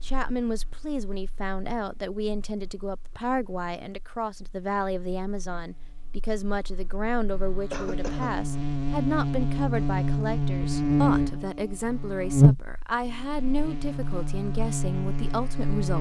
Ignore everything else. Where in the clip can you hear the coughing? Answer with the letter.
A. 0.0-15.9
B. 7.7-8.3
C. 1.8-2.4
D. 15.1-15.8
B.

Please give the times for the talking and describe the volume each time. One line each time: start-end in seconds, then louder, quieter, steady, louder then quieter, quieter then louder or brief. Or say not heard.
0.0-15.9 steady.